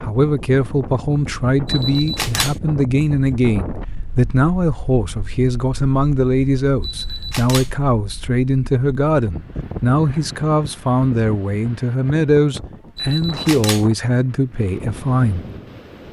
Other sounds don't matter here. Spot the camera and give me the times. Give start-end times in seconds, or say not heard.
1.6-2.6, 6.8-7.8, 12.9-13.9.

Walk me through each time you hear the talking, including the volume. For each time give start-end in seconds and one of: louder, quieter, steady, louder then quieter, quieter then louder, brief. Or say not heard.
0.0-15.4 steady.